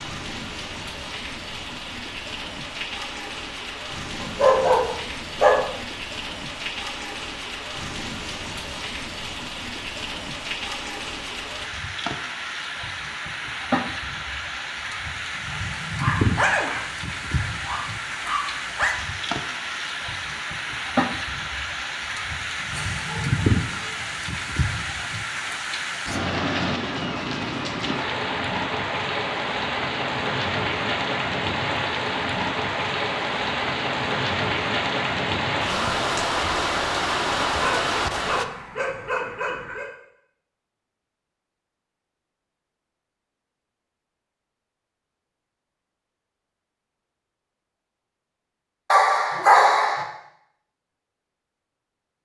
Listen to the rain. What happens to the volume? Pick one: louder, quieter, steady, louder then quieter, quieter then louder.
louder.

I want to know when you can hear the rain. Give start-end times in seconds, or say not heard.
0.0-38.5.